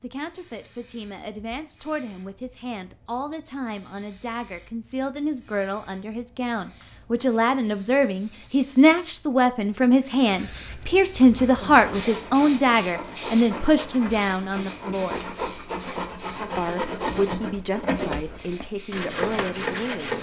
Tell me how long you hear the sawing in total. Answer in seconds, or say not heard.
9 s.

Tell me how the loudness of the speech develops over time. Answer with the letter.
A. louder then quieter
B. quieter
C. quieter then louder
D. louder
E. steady
A.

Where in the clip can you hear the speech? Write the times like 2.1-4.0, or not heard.
0.0-15.2, 16.6-20.1.